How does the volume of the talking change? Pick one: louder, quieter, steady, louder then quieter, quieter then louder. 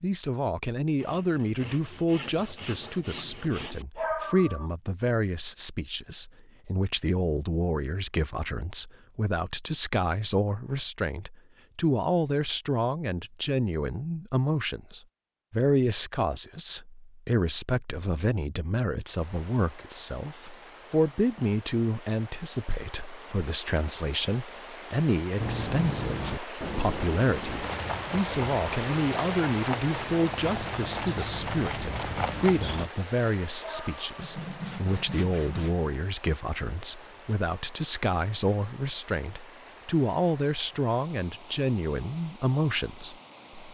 steady.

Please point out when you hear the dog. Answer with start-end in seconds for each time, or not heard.
4.0-4.7, 33.5-34.1.